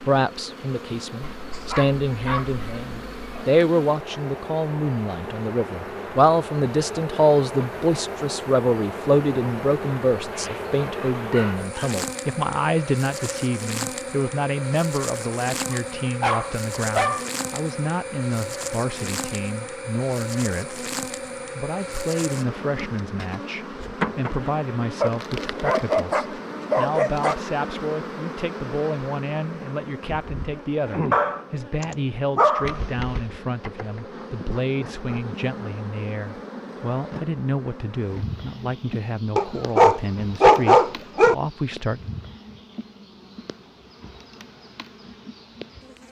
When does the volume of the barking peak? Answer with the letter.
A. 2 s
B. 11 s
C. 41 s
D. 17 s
C.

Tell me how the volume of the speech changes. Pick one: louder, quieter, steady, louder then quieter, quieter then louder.
quieter.